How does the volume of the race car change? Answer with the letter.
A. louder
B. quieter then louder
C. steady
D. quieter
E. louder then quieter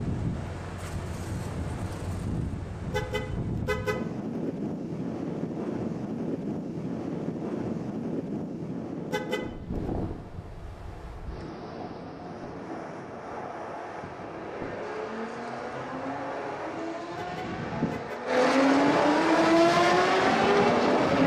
A.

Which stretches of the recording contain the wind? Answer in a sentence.
The wind can be heard from 0.0 to 21.2 s.